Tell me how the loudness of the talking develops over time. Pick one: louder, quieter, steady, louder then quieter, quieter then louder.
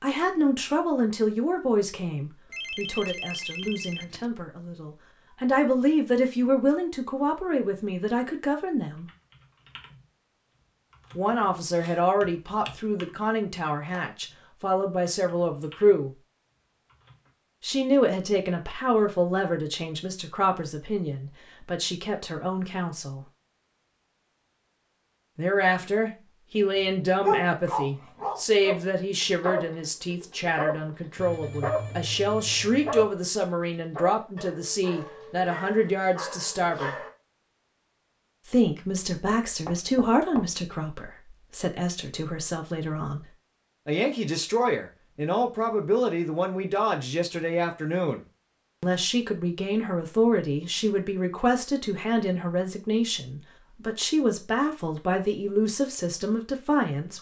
steady.